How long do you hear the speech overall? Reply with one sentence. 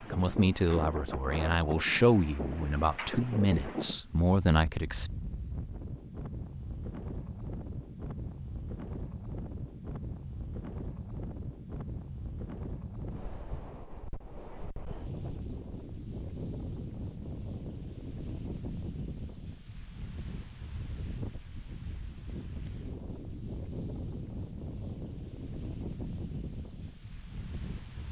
The speech can be heard for 5 seconds in total.